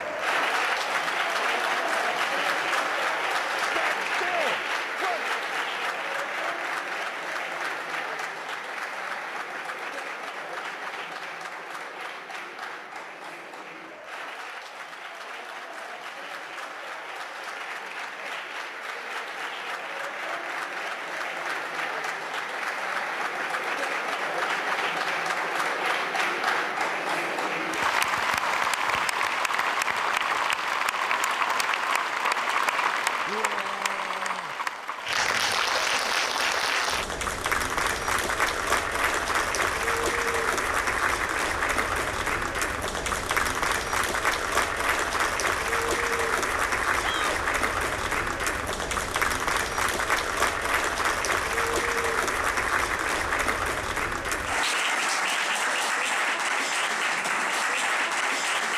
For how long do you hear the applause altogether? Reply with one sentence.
The applause can be heard for 59 seconds in total.